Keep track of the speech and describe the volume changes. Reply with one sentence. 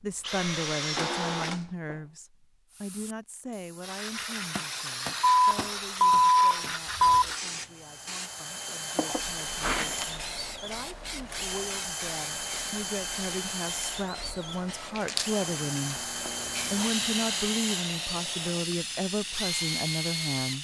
The volume of the speech goes down, then up.